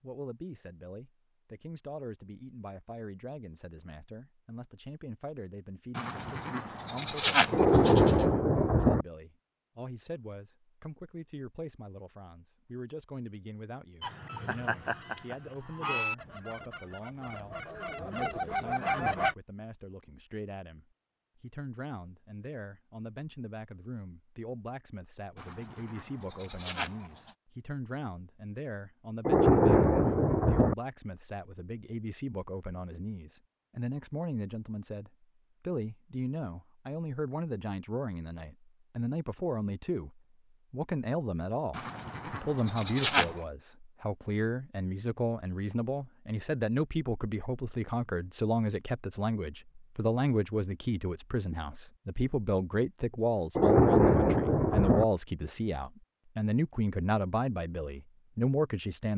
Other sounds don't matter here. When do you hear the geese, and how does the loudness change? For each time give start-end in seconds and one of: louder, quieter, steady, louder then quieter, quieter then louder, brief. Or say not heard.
14.0-19.4 quieter then louder.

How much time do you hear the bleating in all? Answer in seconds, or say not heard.
6 s.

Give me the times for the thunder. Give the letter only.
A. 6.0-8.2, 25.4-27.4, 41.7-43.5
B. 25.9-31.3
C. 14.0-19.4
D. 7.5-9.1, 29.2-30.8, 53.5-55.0
D.